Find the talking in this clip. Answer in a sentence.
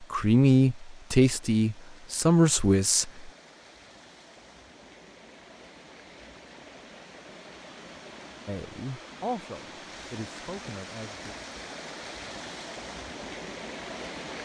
The talking can be heard from 0.0 to 3.3 s and from 8.4 to 11.3 s.